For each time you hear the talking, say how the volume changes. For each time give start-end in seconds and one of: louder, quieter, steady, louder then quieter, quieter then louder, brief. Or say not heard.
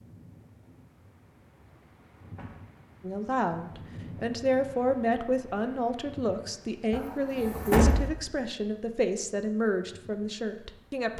3.0-11.1 steady.